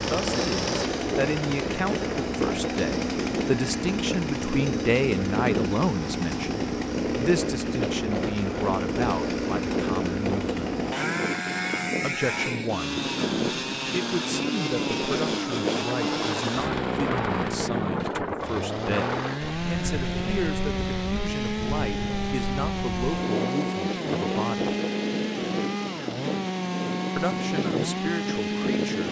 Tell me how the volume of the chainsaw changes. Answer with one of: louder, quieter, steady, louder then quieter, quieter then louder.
steady.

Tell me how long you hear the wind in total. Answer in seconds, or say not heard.
29 s.